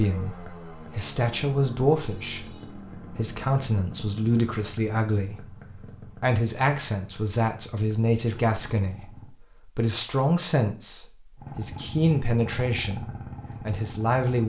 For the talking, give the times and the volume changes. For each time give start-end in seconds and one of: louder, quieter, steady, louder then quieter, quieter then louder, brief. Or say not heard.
0.0-14.4 steady.